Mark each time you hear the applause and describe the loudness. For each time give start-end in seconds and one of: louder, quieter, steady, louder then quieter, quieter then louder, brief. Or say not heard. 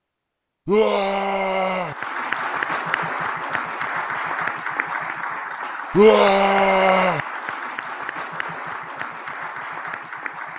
1.8-10.5 quieter.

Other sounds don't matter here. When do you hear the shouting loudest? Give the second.
6 s.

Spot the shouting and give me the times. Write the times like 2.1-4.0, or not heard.
0.7-1.9, 5.9-7.2.